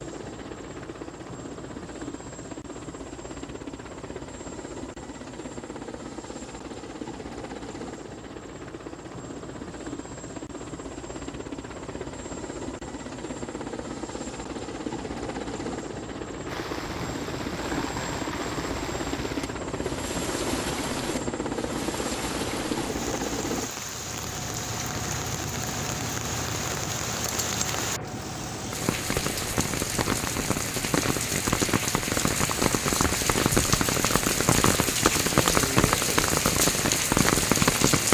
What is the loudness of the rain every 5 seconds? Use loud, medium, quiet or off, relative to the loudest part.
off, off, off, quiet, quiet, medium, loud, loud.